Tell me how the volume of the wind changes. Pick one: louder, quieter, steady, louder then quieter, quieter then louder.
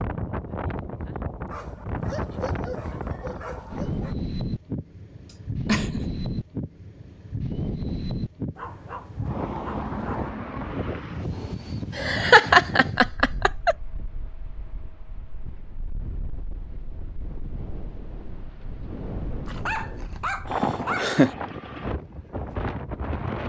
quieter then louder.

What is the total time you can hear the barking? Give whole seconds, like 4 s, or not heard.
6 s.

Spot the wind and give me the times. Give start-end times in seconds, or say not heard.
0.0-23.4.